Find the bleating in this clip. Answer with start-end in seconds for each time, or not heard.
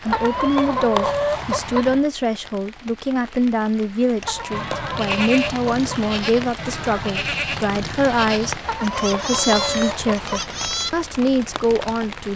4.5-10.9.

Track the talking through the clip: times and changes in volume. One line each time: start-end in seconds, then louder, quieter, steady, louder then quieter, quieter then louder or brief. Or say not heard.
0.0-12.3 steady.